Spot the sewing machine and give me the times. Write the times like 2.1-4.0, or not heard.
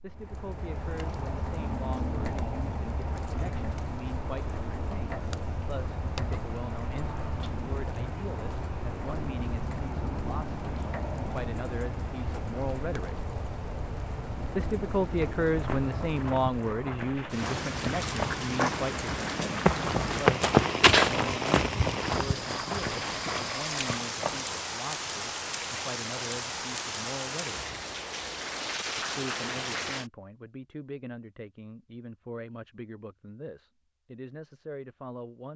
not heard.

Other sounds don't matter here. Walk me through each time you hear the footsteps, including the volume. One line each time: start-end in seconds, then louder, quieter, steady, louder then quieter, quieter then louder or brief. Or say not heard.
15.4-24.6 louder then quieter.